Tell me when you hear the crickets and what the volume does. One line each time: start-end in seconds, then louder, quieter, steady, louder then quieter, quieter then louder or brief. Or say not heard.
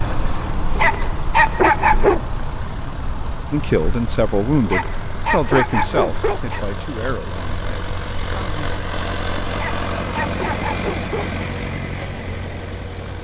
0.0-13.1 quieter.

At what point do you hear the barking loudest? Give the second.
2 s.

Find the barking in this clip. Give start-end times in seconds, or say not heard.
0.8-2.2, 4.7-6.6, 9.6-11.4.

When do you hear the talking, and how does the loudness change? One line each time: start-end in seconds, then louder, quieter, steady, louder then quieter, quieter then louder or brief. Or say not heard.
3.5-8.8 quieter.